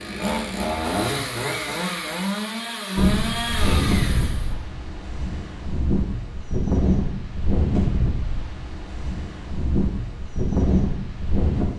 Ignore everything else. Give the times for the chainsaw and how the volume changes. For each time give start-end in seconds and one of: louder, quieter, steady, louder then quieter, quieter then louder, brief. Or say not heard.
0.0-4.5 steady.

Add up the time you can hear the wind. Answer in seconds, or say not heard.
9 s.